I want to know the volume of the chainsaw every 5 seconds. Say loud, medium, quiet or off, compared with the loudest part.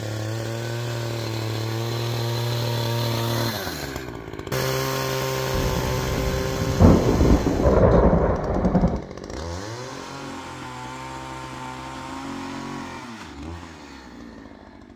loud, loud, medium.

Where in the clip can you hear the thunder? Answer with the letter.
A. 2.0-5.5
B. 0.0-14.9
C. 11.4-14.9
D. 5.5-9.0
D.